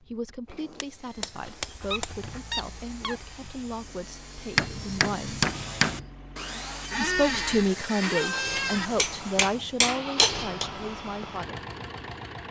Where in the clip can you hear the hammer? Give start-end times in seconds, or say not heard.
0.5-2.1, 4.5-6.0, 8.6-10.7.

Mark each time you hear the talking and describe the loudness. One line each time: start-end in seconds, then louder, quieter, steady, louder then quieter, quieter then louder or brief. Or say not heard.
0.0-5.5 steady
7.0-11.7 quieter.